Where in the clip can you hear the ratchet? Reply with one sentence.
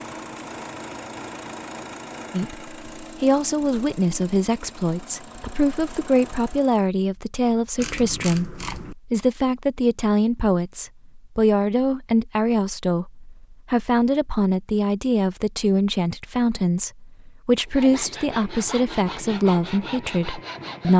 You can hear the ratchet from 7.8 to 8.9 s.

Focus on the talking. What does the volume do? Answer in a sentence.
The loudness of the talking stays about the same.